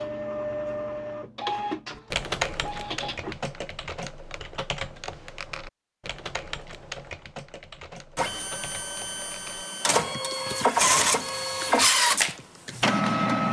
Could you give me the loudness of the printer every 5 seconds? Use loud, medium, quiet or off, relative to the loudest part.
medium, medium, loud.